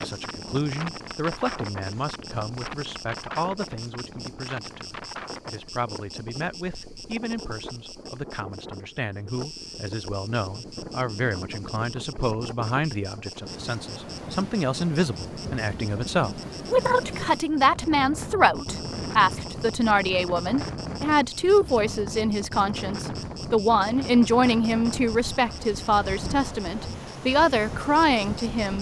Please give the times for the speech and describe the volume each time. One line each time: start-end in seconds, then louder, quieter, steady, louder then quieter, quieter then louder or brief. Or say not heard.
0.0-28.7 louder.